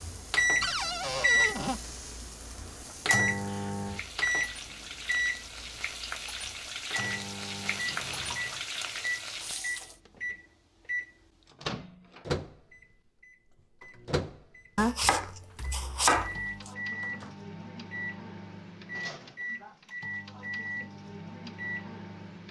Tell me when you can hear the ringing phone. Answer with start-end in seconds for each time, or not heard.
not heard.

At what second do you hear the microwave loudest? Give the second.
1 s.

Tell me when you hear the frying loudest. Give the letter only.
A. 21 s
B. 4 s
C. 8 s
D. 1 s
C.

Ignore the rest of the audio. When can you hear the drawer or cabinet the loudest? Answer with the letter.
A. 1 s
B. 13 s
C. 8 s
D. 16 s
A.